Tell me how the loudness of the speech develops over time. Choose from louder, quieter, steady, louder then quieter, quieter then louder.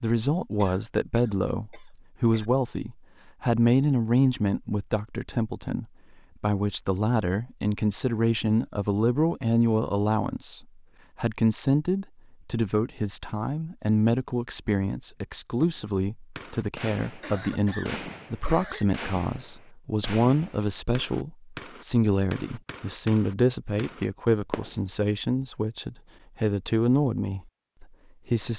steady.